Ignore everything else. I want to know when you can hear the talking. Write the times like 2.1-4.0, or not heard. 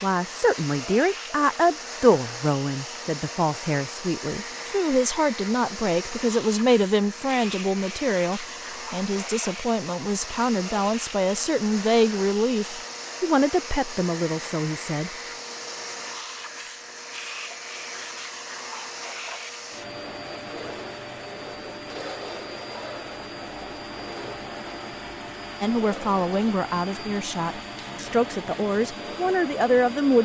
0.0-15.1, 25.6-30.2.